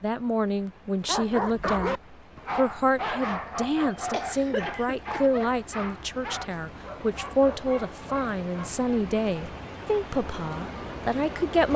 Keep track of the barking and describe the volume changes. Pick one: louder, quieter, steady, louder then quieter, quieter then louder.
quieter.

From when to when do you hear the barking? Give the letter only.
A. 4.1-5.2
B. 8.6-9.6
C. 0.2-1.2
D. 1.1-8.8
D.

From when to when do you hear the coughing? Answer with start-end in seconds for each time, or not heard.
4.1-5.2.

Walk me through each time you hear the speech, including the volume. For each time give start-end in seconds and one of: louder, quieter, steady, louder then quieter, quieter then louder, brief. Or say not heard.
0.0-11.7 steady.